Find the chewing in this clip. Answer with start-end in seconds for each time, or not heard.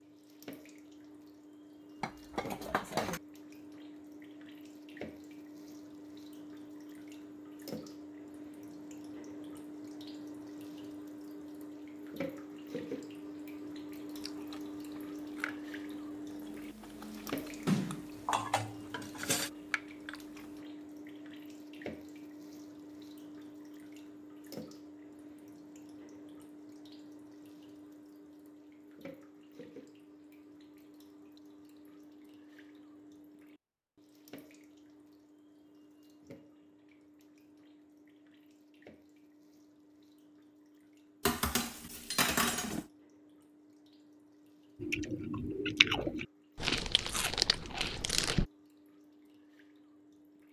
14.2-20.6, 44.8-48.5.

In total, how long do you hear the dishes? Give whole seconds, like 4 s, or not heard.
5 s.